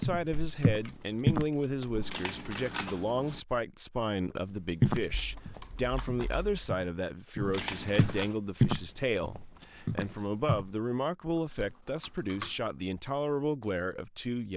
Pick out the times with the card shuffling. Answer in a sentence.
You can hear the card shuffling from 1.9 to 3.4 s and from 7.3 to 8.3 s.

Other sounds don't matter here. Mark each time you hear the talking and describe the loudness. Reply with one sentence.
The talking can be heard from 0.0 to 14.5 s, at a steady volume.